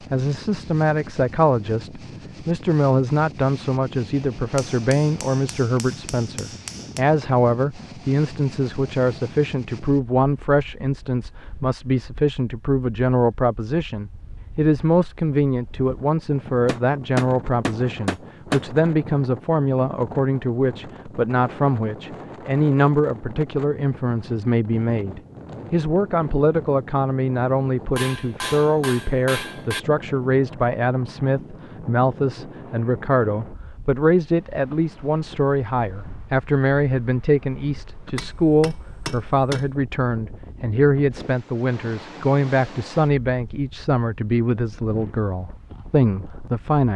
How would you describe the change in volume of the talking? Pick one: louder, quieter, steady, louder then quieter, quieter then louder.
steady.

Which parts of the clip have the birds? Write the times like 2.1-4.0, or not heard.
not heard.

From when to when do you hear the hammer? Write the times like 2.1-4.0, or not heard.
4.5-7.0, 16.6-18.6, 27.9-29.8, 38.1-39.7.